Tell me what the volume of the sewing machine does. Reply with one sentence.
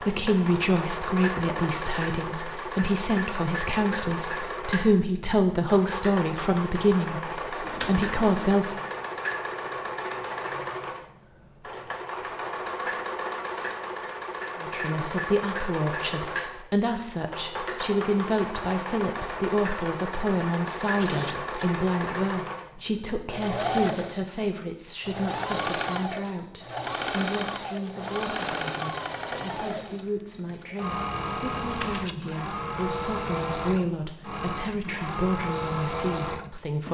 The volume of the sewing machine stays about the same.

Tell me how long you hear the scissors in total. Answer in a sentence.
The scissors can be heard for 2 seconds in total.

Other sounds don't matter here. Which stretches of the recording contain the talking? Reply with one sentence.
The talking can be heard from 0.0 to 8.8 s and from 14.6 to 36.8 s.